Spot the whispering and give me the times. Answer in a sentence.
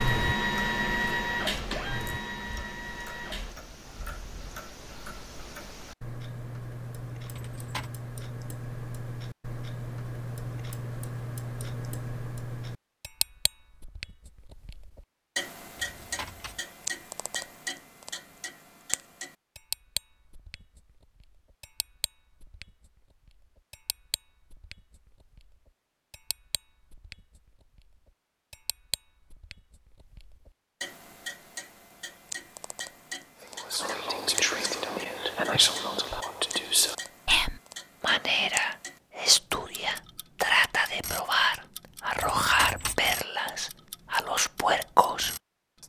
The whispering can be heard from 33.5 to 45.8 s.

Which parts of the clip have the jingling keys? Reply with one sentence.
You can hear the jingling keys from 7.3 to 7.9 s, from 15.8 to 16.6 s and from 42.1 to 43.0 s.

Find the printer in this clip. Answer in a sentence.
The printer can be heard from 0.0 to 3.5 s.